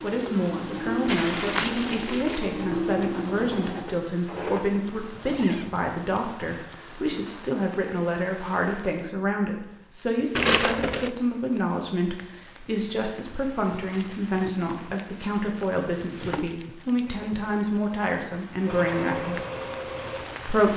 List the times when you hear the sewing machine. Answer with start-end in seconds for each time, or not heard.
0.0-4.7, 17.3-20.6.